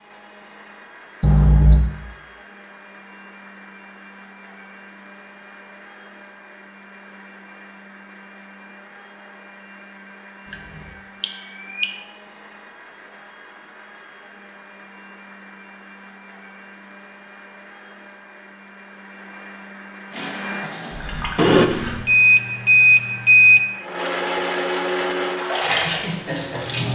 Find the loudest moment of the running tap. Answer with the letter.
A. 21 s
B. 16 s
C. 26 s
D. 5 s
C.